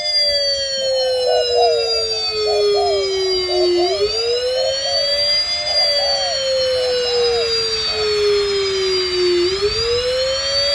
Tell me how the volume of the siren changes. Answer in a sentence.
The loudness of the siren stays about the same.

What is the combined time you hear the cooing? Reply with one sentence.
You can hear the cooing for 7 seconds altogether.